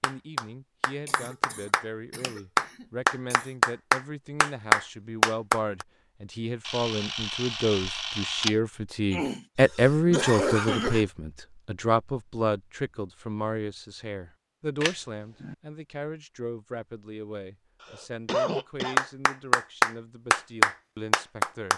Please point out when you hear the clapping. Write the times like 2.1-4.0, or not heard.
0.0-5.8, 18.9-21.7.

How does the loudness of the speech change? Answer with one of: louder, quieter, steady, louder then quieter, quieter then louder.
louder then quieter.